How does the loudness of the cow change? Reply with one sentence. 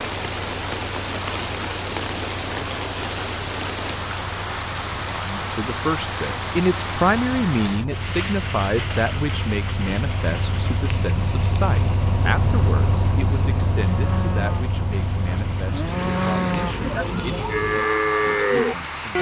The volume of the cow goes up.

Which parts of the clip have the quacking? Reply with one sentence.
The quacking can't be heard in this clip.